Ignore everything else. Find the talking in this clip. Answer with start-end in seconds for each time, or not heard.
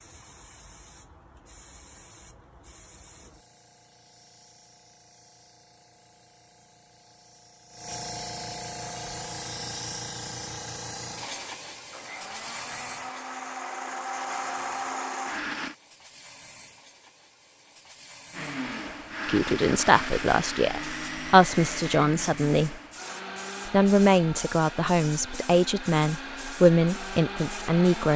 19.2-22.8, 23.6-28.1.